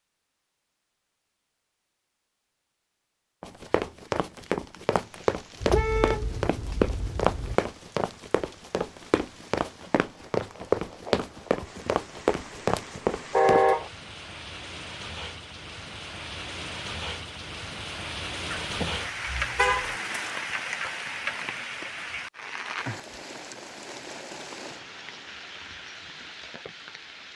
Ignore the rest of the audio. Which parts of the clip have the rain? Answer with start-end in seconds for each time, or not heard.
4.9-27.3.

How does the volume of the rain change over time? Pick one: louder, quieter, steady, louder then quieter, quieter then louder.
louder then quieter.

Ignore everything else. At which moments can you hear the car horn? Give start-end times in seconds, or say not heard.
5.6-7.6, 13.3-13.9, 19.6-20.3.